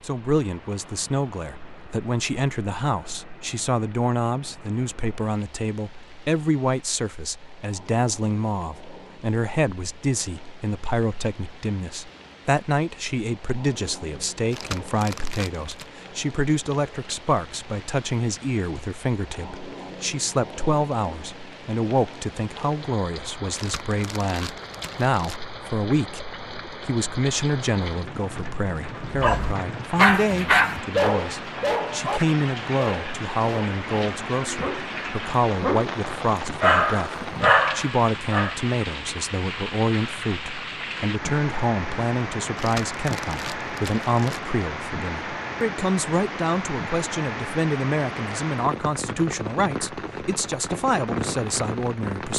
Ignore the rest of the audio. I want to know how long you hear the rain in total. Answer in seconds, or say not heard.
52 s.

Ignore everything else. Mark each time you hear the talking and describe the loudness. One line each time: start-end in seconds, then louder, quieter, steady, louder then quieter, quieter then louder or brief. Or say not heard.
0.0-52.3 steady.